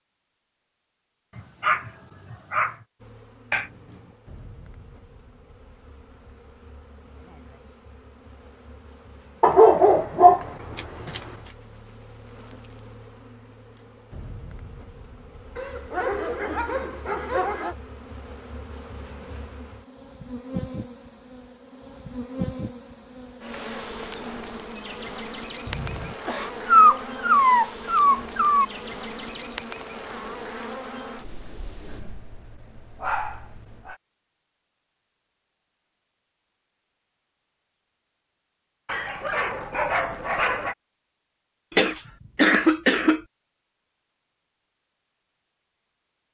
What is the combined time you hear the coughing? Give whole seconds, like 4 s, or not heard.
3 s.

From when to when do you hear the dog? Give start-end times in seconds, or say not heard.
1.4-2.8, 9.4-11.2, 15.6-17.8, 26.6-28.6, 31.9-34.0, 38.9-40.8.